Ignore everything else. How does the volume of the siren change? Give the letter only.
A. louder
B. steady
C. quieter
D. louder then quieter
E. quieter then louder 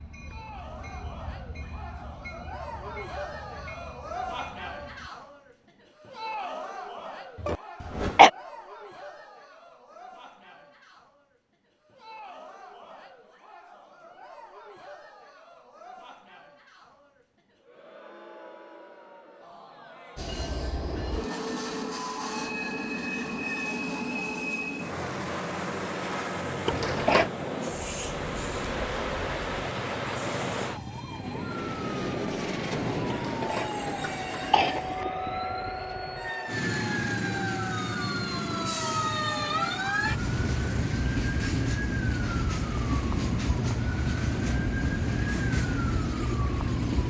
A.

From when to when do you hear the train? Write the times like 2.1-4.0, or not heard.
0.0-5.1, 20.1-47.0.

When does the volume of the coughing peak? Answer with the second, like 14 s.
8 s.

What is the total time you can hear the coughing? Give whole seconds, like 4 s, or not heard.
3 s.